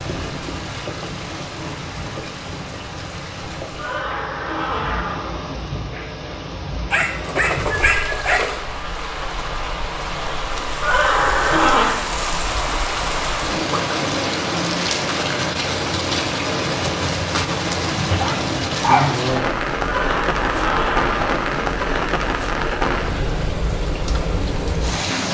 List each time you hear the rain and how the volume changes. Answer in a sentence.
The rain can be heard from 0.0 to 25.2 s, getting louder.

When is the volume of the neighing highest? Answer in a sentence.
The loudest moment of the neighing is at 12 seconds.